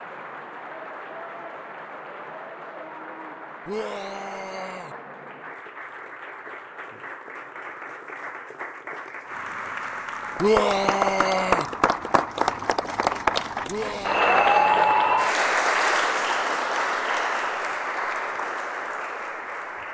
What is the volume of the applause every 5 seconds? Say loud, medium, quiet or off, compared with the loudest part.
quiet, quiet, loud, loud.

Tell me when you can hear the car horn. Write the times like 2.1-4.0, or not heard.
not heard.